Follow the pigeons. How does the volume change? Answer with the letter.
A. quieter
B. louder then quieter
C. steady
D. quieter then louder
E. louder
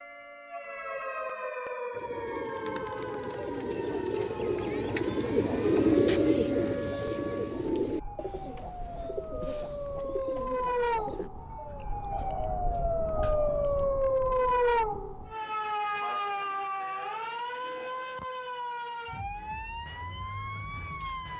B.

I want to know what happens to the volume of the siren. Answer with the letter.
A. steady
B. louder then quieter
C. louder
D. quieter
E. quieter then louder
B.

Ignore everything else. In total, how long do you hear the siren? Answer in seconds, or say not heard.
21 s.